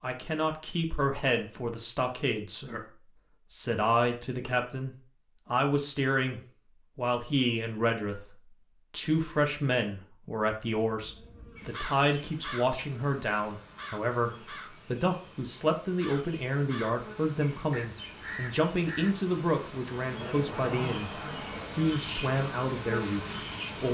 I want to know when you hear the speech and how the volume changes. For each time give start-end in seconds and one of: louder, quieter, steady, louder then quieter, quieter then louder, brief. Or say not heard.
0.0-23.8 steady.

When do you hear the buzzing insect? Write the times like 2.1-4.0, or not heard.
10.9-23.8.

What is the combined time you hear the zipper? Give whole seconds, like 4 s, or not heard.
2 s.